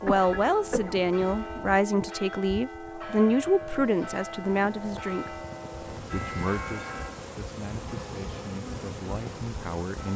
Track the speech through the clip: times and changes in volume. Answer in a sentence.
You can hear the speech from 0.0 to 10.1 s, getting quieter.